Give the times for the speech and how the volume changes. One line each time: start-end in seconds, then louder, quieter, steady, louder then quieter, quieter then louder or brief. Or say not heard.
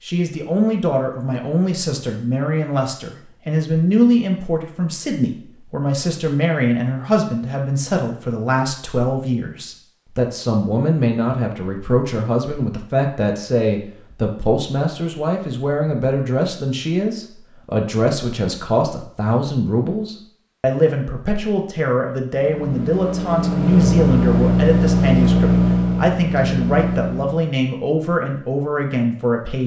0.0-29.6 steady.